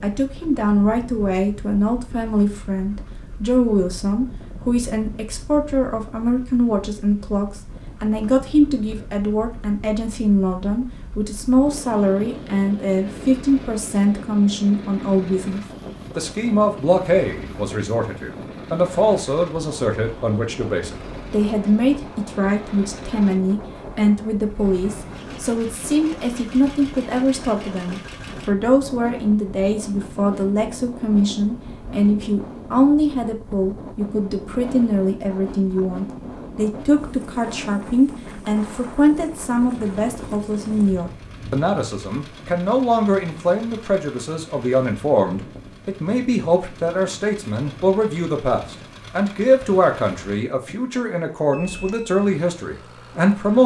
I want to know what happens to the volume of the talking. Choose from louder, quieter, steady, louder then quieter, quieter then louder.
steady.